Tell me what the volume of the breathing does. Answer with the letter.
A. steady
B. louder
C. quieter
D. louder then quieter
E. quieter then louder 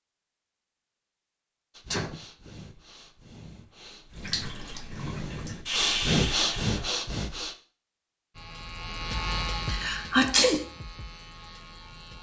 B.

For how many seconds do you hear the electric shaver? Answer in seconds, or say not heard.
4 s.